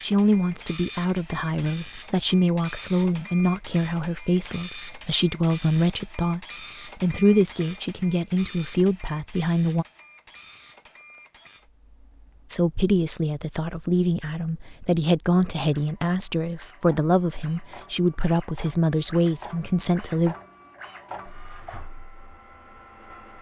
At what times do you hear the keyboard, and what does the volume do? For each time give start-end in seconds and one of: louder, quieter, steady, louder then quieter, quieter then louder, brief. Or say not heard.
not heard.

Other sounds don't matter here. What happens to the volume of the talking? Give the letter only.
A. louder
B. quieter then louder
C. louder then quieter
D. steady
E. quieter
D.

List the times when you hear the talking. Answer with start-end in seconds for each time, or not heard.
0.0-9.8, 12.5-20.4.